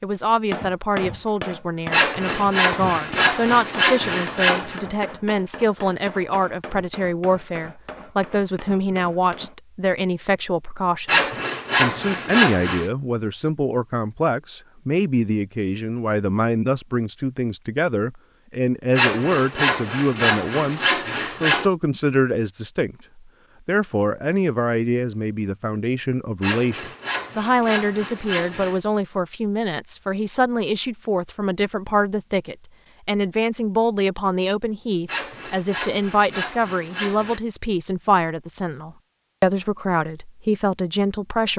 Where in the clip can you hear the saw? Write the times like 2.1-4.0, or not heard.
1.9-4.8, 11.1-12.9, 18.9-21.7, 26.4-28.8, 35.0-37.4.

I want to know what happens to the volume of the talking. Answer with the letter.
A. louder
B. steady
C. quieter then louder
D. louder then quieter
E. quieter
B.